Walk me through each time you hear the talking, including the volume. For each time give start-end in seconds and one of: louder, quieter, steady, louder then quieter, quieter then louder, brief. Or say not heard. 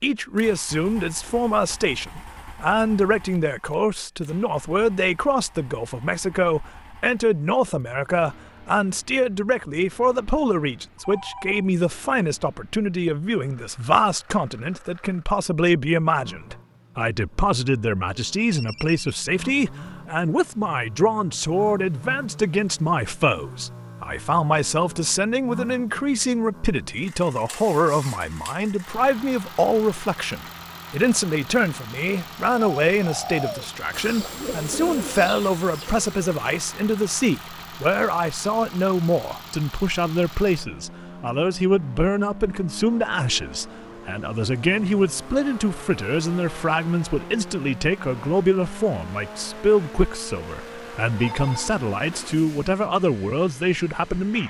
0.0-54.4 steady.